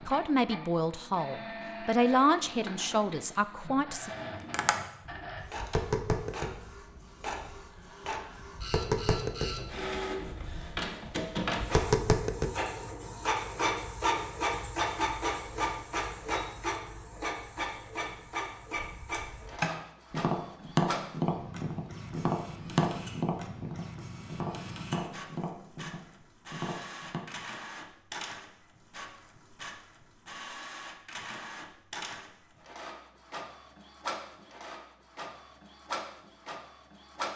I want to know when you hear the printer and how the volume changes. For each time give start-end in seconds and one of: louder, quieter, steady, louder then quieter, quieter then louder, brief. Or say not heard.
0.0-37.3 louder then quieter.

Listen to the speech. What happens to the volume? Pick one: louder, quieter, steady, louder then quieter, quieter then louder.
louder then quieter.